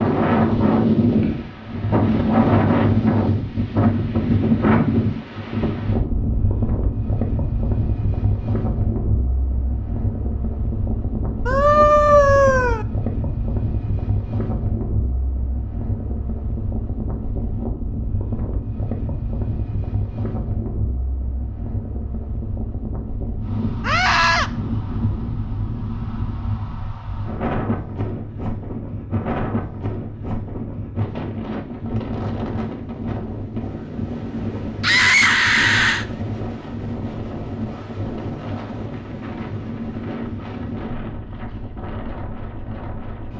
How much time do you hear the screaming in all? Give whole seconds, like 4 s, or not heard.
3 s.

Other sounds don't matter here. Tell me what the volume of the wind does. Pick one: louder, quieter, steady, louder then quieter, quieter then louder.
quieter.